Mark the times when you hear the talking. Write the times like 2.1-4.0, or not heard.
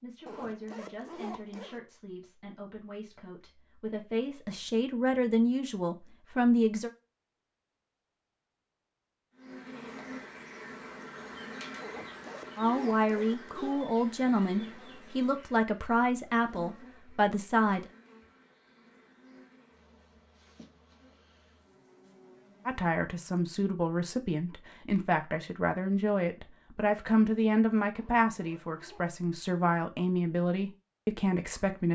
0.0-6.9, 12.6-17.9, 22.6-31.9.